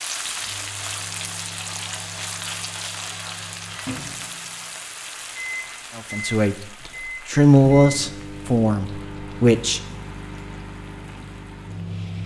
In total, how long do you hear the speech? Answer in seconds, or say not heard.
4 s.